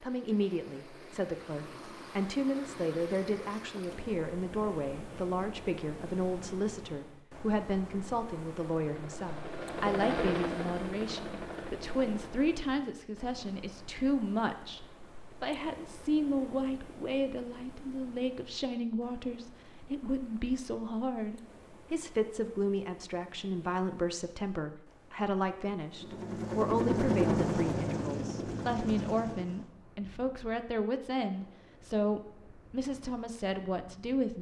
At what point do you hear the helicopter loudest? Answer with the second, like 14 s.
27 s.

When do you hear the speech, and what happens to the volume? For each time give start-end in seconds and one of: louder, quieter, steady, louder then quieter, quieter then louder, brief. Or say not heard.
0.0-34.3 steady.